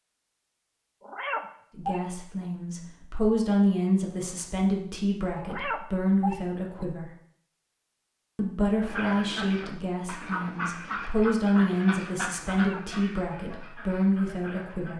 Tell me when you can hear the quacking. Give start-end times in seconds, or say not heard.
8.8-14.9.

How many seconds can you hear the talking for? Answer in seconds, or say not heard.
12 s.